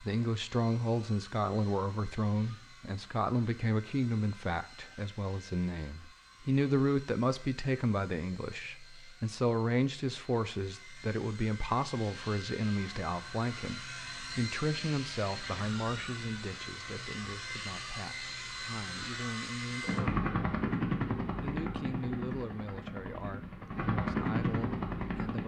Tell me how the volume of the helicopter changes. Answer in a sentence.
The volume of the helicopter goes up.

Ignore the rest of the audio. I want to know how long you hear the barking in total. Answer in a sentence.
The barking can't be heard in this clip.